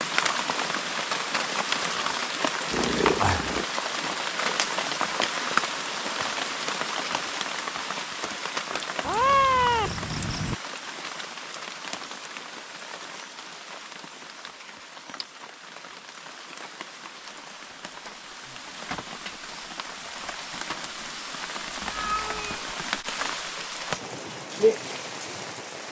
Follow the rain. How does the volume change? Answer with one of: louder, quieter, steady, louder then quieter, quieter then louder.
quieter then louder.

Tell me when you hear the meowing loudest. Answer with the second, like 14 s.
9 s.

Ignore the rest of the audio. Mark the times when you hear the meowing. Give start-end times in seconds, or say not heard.
2.7-3.6, 9.0-10.6, 21.8-22.6.